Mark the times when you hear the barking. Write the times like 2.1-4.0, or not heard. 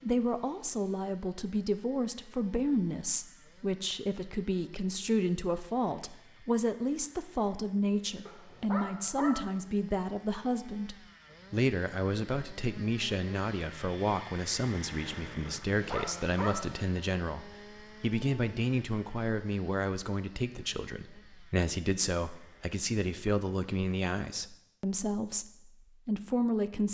8.2-9.5, 15.4-16.7.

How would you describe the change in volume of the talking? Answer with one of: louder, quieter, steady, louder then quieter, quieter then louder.
steady.